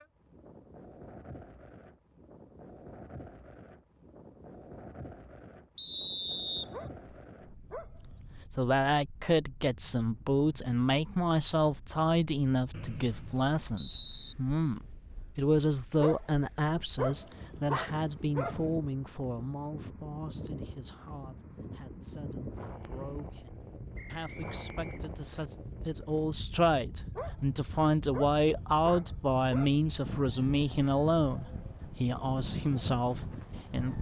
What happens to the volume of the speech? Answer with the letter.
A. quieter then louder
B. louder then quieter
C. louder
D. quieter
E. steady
A.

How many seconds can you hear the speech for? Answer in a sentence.
The speech can be heard for 25 seconds in total.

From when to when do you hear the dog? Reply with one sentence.
You can hear the dog from 6.7 to 8.2 s, from 16.0 to 18.6 s and from 27.1 to 29.8 s.